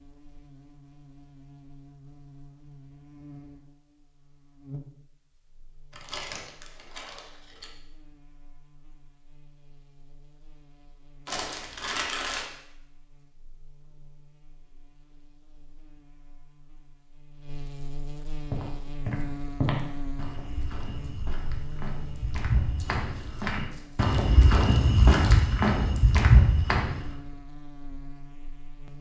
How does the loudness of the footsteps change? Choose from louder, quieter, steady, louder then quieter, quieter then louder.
quieter then louder.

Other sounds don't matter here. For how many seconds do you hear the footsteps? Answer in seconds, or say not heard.
9 s.